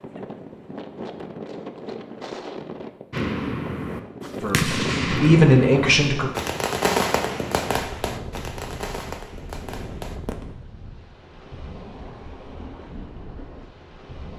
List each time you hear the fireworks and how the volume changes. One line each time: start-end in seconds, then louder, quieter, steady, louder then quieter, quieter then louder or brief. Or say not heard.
3.1-10.8 quieter.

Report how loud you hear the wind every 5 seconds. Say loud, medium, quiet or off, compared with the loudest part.
loud, loud, medium.